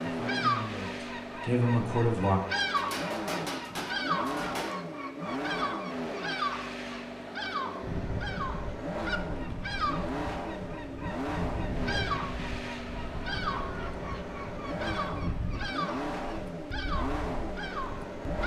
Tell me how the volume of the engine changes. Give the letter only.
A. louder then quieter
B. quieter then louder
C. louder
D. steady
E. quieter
D.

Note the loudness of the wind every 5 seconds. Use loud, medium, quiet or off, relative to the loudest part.
off, loud, loud, loud.